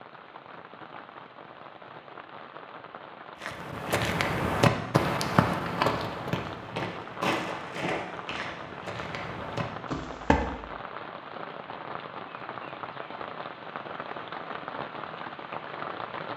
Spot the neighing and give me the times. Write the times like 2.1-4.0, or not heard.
not heard.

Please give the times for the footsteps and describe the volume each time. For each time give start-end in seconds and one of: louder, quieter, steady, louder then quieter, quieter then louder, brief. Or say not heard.
3.4-10.5 quieter.